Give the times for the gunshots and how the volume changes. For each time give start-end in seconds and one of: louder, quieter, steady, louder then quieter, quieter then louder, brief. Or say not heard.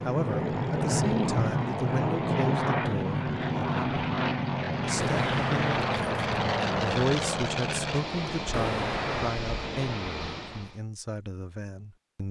5.0-9.4 quieter then louder.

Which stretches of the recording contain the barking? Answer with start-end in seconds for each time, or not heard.
not heard.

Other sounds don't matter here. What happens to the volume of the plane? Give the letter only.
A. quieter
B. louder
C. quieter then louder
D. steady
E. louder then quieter
A.